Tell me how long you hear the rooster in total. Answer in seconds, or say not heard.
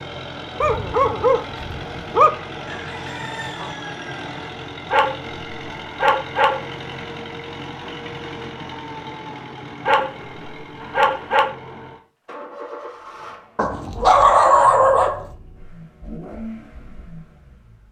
2 s.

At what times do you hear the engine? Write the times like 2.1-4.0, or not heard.
0.0-17.8.